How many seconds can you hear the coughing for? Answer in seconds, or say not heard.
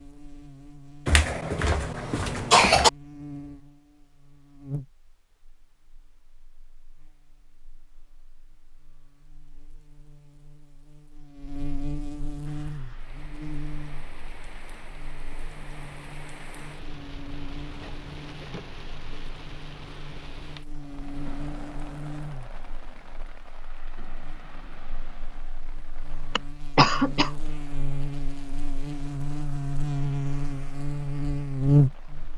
3 s.